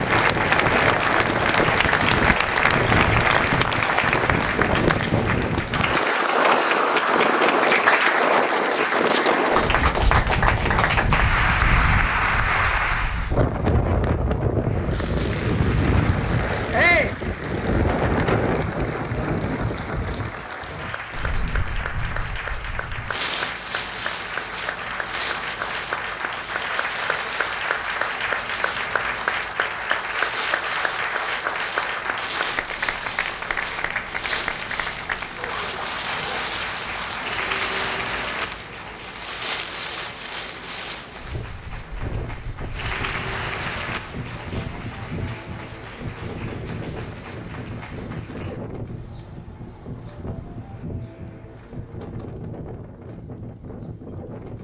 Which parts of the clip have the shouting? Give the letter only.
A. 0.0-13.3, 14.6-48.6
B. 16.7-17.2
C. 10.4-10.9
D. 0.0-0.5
B.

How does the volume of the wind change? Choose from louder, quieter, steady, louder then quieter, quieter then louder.
quieter.